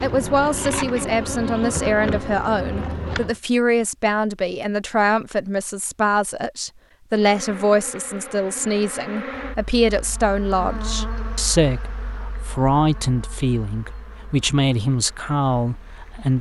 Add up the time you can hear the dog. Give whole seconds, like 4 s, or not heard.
not heard.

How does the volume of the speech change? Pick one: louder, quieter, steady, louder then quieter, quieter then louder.
steady.